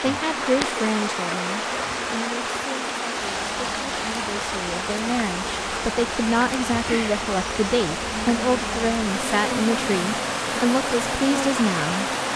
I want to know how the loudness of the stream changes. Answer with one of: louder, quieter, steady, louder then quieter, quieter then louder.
steady.